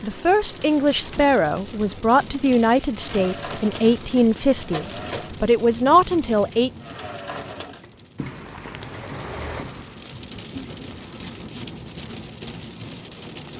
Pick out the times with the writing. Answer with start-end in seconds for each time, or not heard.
8.2-10.1.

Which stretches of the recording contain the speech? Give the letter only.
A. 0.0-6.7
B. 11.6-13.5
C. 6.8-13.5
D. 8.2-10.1
A.